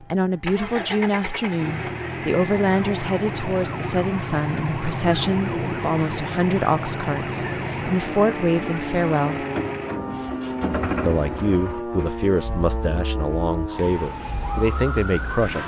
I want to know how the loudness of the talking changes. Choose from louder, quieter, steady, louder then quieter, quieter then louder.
steady.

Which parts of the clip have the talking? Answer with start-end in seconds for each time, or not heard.
0.0-9.4, 11.1-15.6.